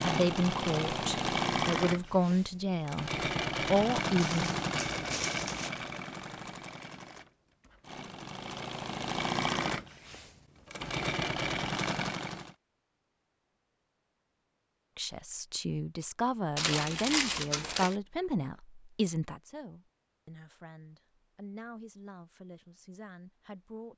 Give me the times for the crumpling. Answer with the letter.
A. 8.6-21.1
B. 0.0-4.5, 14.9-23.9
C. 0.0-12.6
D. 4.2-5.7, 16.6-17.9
D.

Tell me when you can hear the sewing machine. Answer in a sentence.
The sewing machine can be heard from 0.0 to 12.6 s.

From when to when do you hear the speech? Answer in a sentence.
You can hear the speech from 0.0 to 4.5 s and from 14.9 to 23.9 s.